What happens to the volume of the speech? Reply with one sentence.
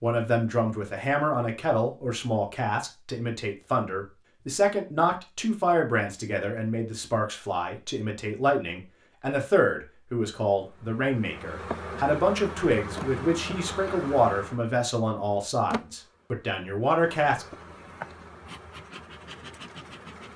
The volume of the speech stays about the same.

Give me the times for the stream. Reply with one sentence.
You can't hear the stream here.